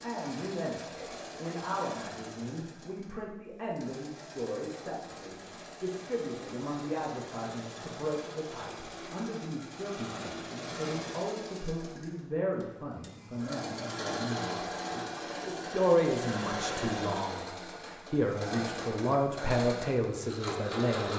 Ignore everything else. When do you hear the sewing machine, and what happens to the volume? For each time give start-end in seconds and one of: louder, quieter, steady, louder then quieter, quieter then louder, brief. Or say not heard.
0.0-21.1 louder.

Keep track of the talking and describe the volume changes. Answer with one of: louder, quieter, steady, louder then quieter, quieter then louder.
louder.